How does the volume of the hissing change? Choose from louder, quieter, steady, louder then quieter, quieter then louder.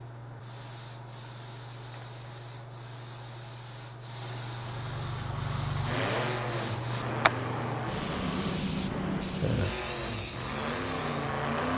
louder.